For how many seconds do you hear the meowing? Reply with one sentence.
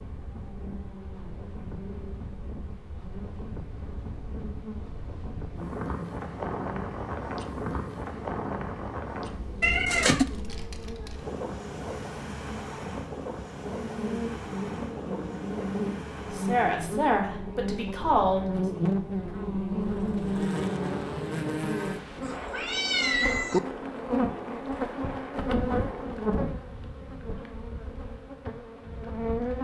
The meowing can be heard for 2 seconds in total.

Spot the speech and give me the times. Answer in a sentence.
The speech can be heard from 16.3 to 18.4 s.